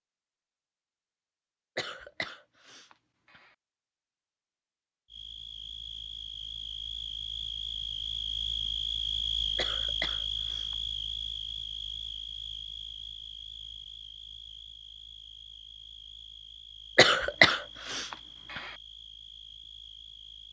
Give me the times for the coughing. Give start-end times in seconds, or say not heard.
1.8-3.5, 9.6-10.8, 16.9-18.7.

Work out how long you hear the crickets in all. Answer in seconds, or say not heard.
15 s.